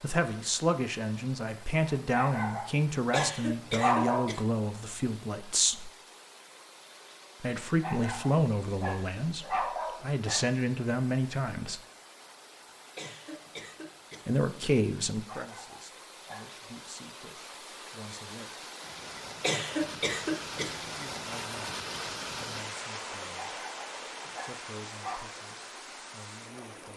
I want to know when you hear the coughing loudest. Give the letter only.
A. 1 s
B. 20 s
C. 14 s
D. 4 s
B.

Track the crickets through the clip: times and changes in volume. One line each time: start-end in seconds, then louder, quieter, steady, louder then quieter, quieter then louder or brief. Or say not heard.
not heard.